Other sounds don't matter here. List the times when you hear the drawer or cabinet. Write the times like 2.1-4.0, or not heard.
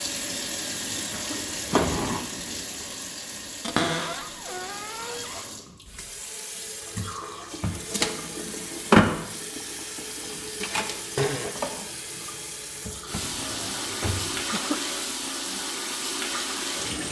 3.6-5.5, 13.2-14.3.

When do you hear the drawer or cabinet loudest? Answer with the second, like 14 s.
4 s.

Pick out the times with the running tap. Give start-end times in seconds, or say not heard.
0.0-17.0.